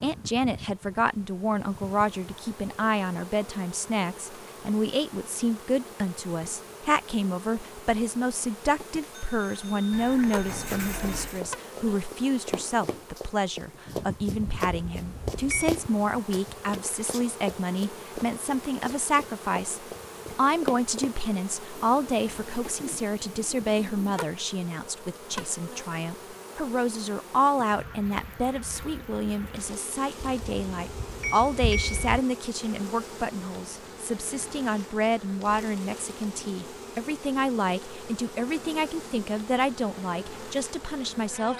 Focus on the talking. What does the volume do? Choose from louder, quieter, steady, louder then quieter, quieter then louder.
steady.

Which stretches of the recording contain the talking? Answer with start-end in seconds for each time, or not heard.
0.0-41.5.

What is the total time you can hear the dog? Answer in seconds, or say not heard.
not heard.